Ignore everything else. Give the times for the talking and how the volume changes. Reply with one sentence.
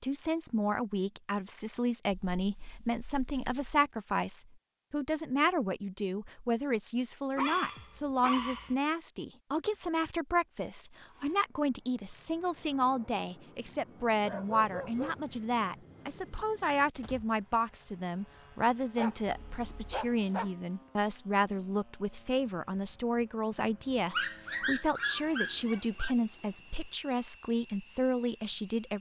The talking can be heard from 0.0 to 28.9 s, at a steady volume.